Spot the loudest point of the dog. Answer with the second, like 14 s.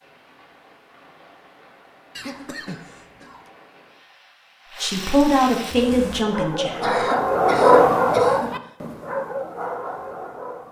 8 s.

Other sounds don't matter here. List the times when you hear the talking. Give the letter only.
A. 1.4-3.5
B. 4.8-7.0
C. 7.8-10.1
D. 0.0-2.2
B.